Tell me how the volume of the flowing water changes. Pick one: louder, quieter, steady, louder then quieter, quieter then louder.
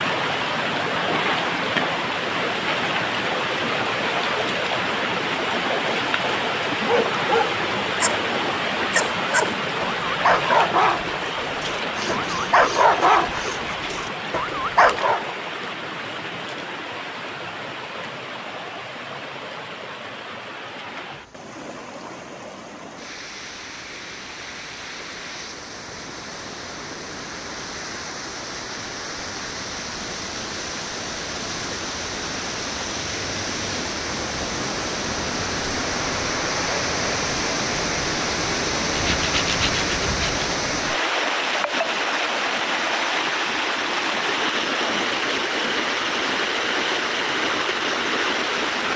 quieter then louder.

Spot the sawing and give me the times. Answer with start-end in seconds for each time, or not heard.
11.9-13.7, 38.9-40.5.